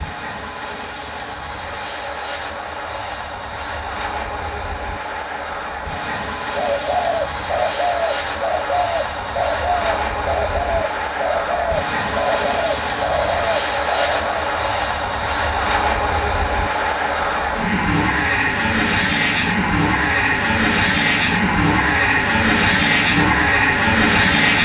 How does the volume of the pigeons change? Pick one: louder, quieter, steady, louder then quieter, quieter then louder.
steady.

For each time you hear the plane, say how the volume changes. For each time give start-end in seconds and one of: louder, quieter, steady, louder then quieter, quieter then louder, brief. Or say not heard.
0.0-24.6 louder.